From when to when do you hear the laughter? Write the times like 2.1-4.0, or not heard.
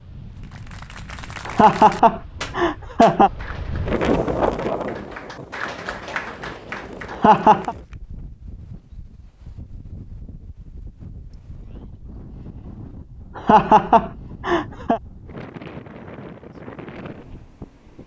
1.4-3.3, 7.1-7.8, 13.3-15.0.